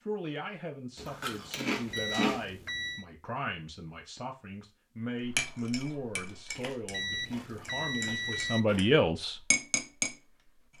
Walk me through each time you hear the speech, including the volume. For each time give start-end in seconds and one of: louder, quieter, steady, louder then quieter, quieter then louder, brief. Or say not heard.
0.1-9.4 louder.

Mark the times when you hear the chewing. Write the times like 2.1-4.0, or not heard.
0.9-2.5, 6.5-8.8.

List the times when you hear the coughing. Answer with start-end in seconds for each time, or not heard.
not heard.